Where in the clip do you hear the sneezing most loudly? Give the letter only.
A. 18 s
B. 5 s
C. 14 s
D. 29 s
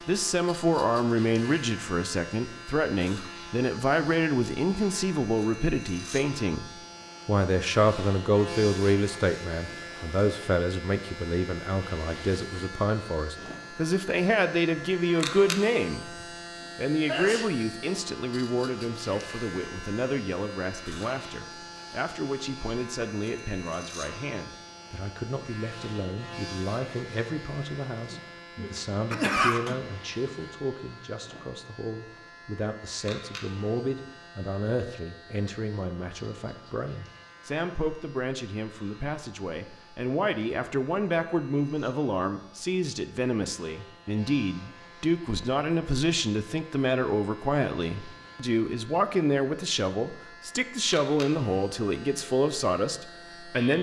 D.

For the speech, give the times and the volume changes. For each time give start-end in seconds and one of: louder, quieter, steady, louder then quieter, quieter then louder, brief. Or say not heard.
0.1-53.7 quieter then louder.